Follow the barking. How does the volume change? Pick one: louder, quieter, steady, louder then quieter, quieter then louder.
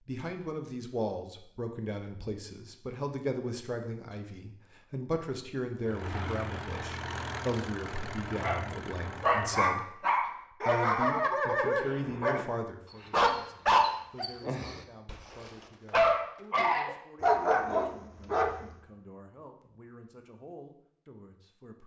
steady.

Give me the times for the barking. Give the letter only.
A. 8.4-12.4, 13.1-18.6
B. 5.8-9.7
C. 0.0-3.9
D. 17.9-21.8
A.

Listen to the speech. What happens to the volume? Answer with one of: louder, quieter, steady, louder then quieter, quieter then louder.
quieter.